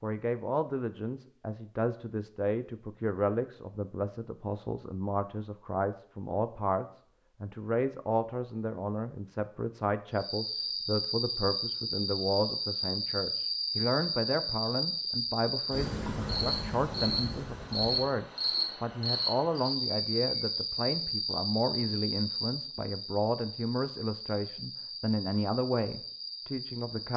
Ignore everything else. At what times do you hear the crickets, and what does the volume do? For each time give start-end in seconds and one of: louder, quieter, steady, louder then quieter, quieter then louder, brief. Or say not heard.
10.2-27.1 quieter.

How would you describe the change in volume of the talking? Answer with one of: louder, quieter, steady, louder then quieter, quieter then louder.
steady.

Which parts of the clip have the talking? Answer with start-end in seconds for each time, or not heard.
0.0-27.1.